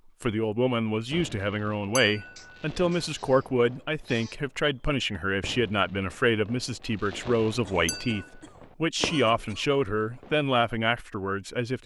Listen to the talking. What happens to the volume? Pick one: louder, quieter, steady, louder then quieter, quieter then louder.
steady.